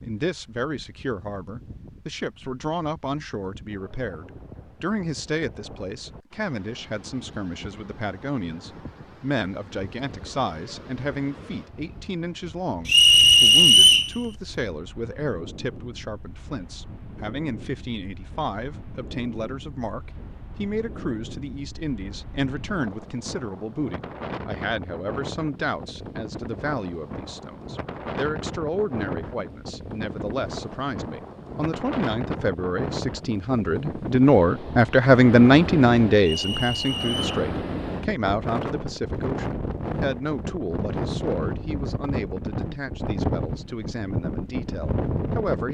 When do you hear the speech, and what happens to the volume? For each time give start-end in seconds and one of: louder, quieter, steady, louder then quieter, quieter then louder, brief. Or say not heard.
0.0-45.7 louder then quieter.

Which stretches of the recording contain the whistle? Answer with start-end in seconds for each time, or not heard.
12.8-14.1, 36.2-37.5.